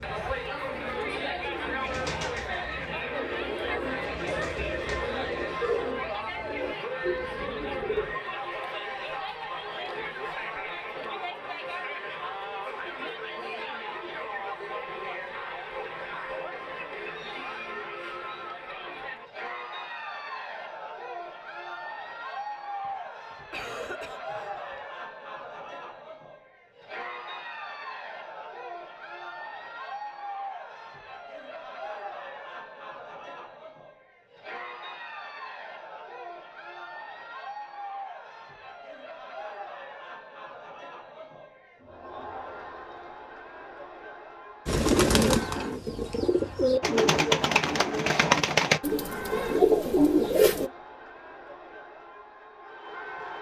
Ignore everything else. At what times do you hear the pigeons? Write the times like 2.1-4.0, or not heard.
0.0-8.2, 44.6-50.7.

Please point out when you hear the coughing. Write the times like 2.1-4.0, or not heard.
22.8-24.8.